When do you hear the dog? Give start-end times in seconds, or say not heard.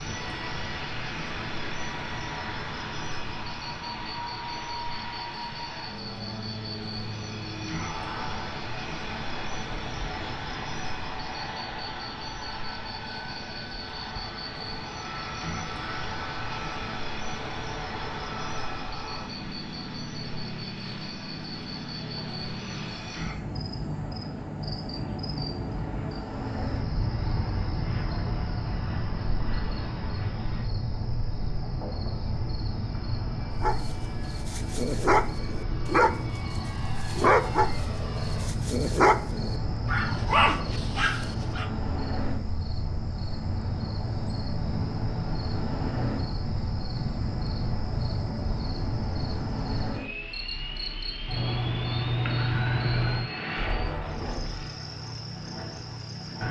33.6-36.1, 37.0-41.7.